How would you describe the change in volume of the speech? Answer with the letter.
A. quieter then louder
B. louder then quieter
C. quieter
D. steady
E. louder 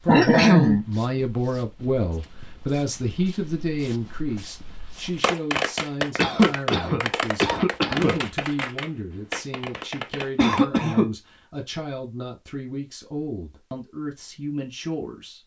C.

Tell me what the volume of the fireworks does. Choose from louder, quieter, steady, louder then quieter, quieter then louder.
quieter.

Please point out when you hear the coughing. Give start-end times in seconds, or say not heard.
0.1-0.8, 6.2-8.2, 10.3-11.1.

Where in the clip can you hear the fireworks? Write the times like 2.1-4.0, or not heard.
5.2-10.6.